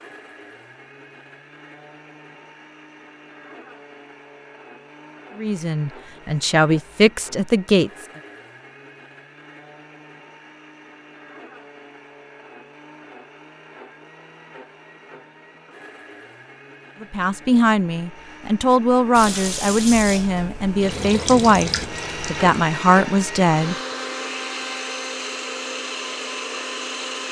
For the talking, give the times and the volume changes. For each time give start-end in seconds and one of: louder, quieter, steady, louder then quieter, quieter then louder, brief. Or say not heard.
5.3-7.9 brief
17.0-23.8 steady.